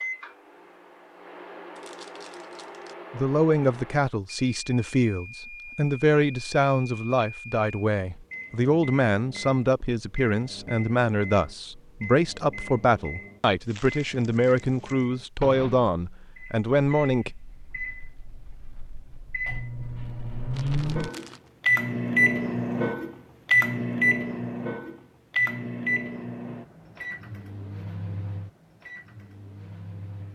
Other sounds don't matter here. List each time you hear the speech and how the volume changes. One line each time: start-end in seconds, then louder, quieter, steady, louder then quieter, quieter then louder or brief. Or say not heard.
3.1-17.3 steady.